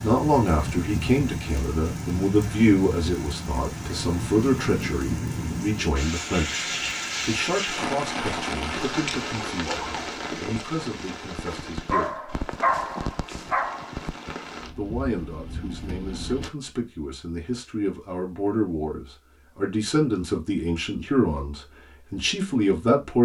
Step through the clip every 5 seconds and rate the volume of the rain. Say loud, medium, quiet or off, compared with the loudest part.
loud, loud, medium, medium, off.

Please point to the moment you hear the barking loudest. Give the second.
13 s.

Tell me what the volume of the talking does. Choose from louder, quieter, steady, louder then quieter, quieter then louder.
quieter then louder.